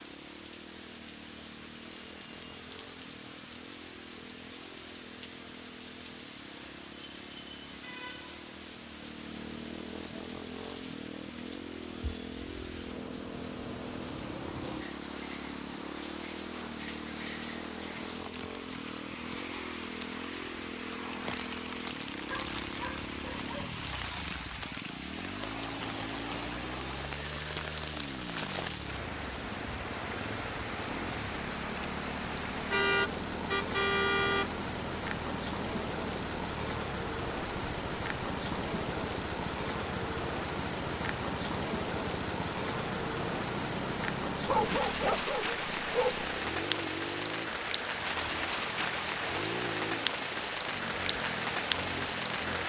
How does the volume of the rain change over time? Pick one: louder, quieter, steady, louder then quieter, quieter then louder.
louder.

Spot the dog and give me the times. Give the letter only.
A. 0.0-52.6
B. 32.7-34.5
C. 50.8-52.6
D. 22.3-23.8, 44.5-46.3
D.